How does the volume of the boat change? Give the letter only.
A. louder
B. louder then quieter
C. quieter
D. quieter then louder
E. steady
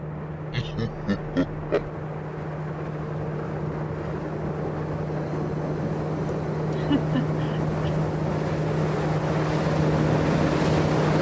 A.